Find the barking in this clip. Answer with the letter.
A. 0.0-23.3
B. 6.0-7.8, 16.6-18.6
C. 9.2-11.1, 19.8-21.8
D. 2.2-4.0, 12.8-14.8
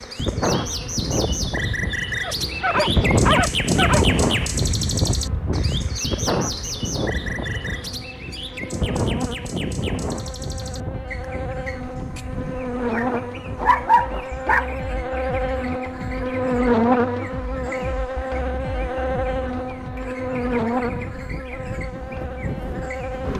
D.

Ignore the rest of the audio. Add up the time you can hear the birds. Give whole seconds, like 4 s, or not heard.
23 s.